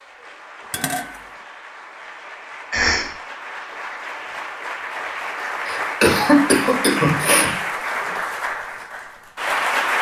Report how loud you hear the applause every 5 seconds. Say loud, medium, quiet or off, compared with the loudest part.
medium, loud.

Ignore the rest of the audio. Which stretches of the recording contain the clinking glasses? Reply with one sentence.
You can hear the clinking glasses from 0.6 to 1.2 s.